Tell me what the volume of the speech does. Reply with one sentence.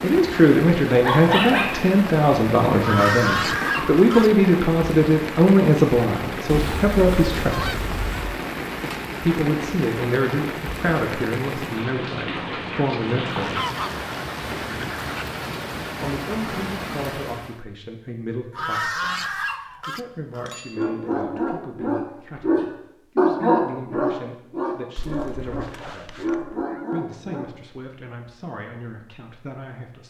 The loudness of the speech goes down.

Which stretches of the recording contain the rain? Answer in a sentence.
You can hear the rain from 0.0 to 17.6 s.